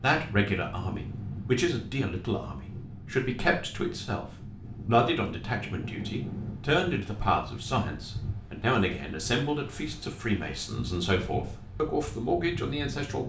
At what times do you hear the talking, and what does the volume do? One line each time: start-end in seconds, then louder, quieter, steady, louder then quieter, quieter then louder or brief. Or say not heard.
0.0-13.2 steady.